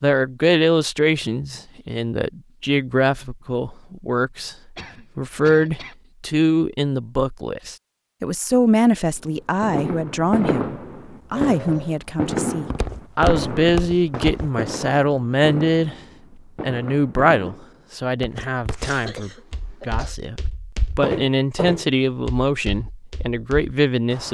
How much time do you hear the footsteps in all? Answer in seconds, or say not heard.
8 s.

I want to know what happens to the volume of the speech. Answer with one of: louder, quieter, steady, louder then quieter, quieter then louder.
steady.